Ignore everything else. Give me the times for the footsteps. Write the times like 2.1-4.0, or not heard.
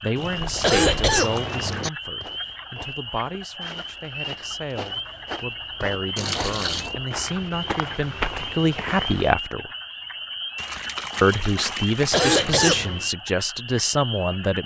1.8-9.3.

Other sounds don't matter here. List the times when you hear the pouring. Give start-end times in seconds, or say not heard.
0.1-1.9, 6.2-7.0, 10.6-12.7.